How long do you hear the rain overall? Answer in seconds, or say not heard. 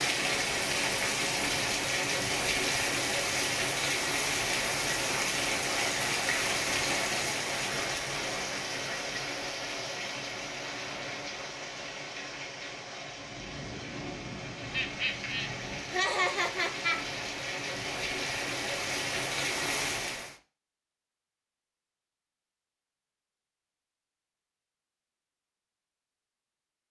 20 s.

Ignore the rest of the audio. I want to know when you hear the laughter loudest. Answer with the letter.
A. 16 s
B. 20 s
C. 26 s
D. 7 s
A.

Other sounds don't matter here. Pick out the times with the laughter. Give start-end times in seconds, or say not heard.
14.7-17.1.